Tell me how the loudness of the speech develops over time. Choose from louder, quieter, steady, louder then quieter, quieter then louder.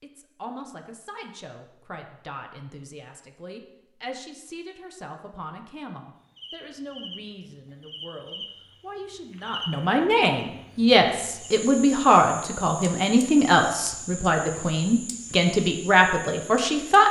louder.